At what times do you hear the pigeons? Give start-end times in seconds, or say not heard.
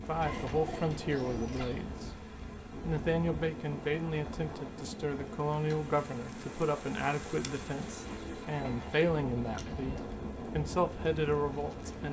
0.2-1.9, 7.8-10.1.